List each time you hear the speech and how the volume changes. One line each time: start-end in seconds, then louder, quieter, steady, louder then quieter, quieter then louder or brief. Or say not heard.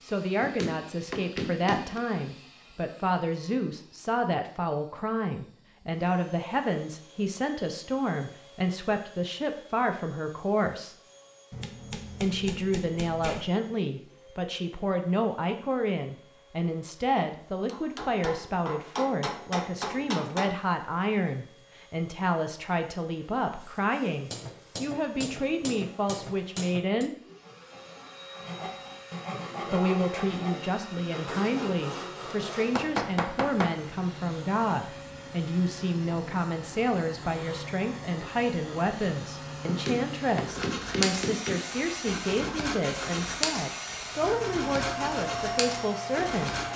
0.0-10.9 steady
12.2-27.1 steady
29.7-46.6 steady.